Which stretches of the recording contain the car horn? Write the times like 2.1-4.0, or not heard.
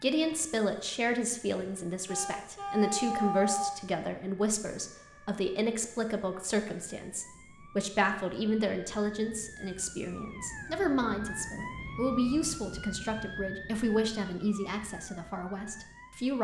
2.0-3.8.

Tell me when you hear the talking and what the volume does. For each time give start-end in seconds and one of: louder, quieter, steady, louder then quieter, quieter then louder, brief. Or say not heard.
0.0-16.3 steady.